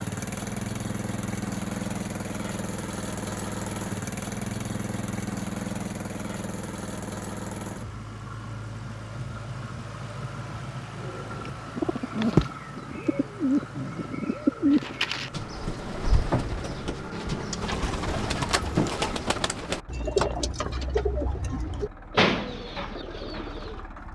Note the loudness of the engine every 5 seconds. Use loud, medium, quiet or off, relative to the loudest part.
loud, loud, medium, medium, quiet.